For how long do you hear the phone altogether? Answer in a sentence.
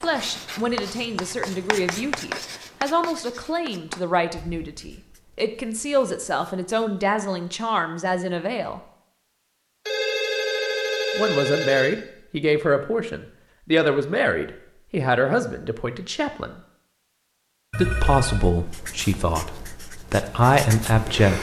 You can hear the phone for 4 seconds altogether.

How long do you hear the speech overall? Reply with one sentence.
You can hear the speech for 18 seconds altogether.